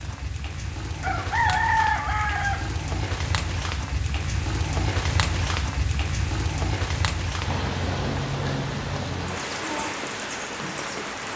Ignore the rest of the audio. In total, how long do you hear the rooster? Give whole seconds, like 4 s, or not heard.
2 s.